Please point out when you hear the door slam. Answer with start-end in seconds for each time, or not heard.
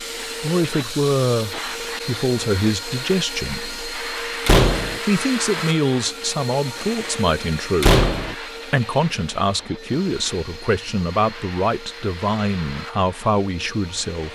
4.5-5.0, 7.8-8.3.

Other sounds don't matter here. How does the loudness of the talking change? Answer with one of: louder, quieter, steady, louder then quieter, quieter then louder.
steady.